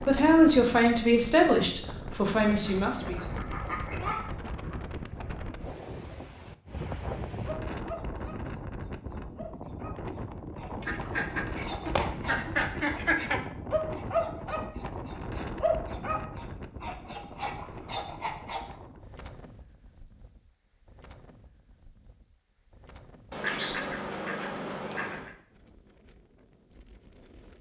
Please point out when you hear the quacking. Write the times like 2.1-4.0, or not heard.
2.6-4.3, 10.8-13.4, 23.3-25.4.